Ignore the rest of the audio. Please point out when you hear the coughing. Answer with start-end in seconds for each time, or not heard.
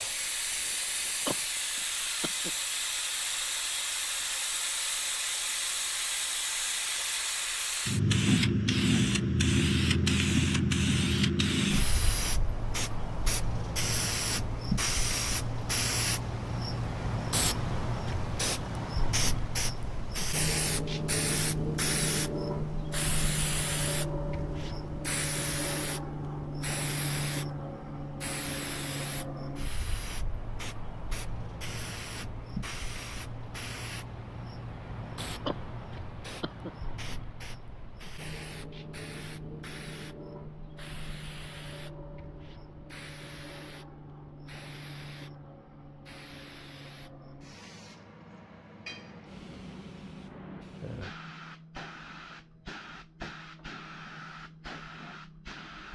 1.2-2.5, 35.5-36.7.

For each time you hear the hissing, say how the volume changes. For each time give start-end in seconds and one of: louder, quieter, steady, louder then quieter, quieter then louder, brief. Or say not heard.
0.0-55.9 quieter.